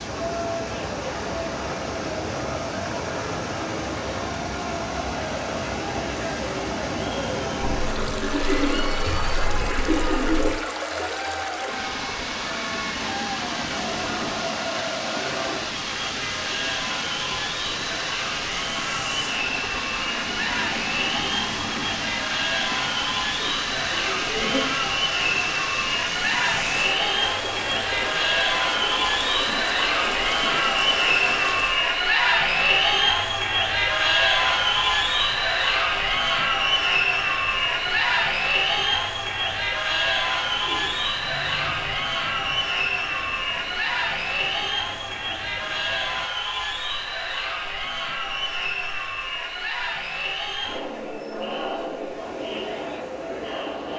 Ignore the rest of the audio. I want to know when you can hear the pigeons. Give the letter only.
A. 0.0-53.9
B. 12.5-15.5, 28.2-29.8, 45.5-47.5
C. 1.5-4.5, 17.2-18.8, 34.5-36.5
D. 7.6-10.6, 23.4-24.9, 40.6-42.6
D.